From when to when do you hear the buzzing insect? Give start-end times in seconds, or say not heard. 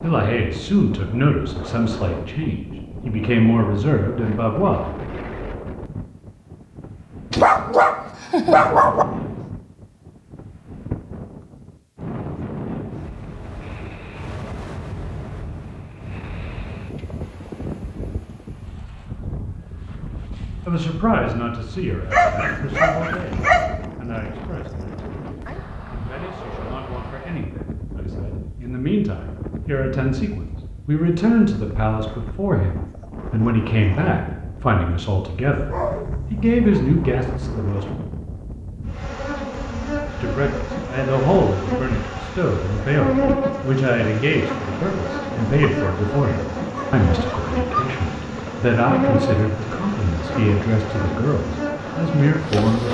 38.9-52.8.